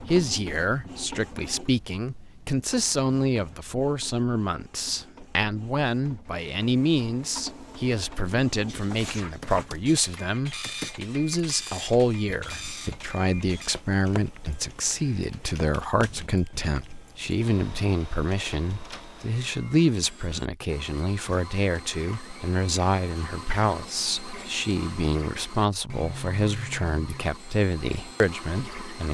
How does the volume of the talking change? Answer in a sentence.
The loudness of the talking stays about the same.